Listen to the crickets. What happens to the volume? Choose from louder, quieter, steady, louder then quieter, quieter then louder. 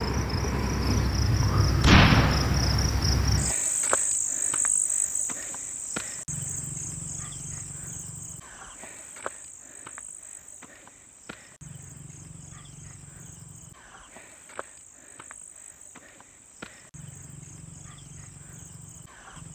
quieter.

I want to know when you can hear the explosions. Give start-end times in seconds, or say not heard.
1.8-2.9.